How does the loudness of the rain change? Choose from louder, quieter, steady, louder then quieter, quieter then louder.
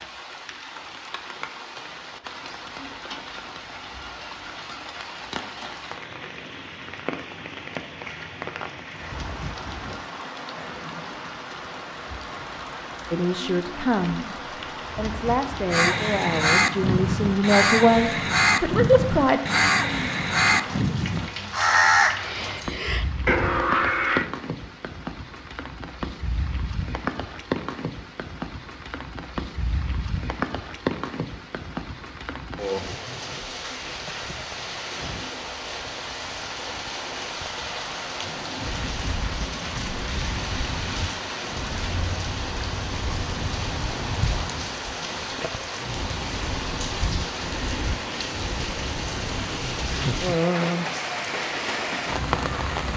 louder.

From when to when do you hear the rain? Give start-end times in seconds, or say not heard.
0.0-52.9.